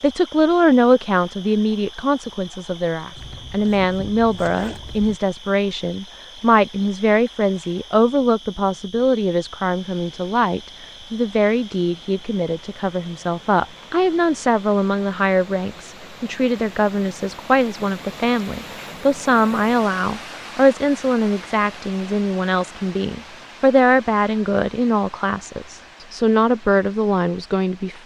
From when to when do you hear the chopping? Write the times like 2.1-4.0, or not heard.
not heard.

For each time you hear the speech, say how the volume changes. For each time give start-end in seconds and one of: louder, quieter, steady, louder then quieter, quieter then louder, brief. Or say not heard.
0.0-28.0 steady.